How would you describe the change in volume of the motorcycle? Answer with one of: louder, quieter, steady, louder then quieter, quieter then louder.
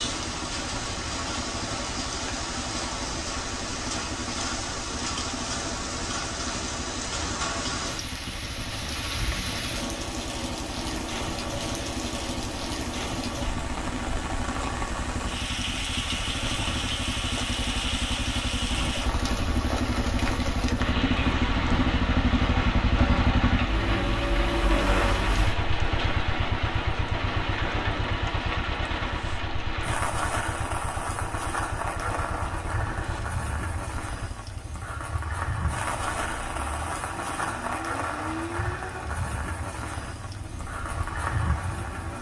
louder then quieter.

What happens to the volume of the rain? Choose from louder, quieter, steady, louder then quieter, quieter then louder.
steady.